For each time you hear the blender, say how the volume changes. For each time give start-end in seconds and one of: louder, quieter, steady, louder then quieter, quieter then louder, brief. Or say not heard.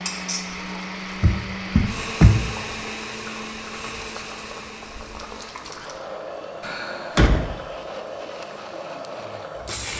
0.0-9.9 quieter.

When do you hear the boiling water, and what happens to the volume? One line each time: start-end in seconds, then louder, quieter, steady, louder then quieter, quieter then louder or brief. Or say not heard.
0.0-9.9 louder.